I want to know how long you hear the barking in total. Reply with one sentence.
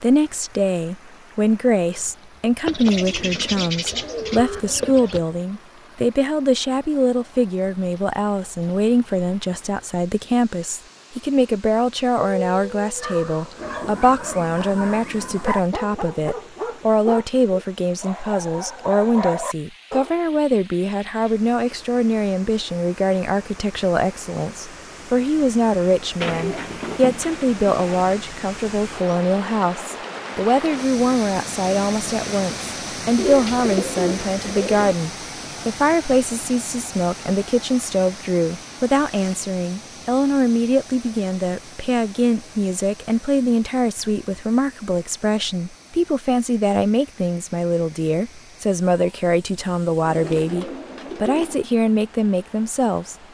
The barking can be heard for 8 seconds in total.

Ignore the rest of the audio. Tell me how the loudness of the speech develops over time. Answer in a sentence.
The loudness of the speech stays about the same.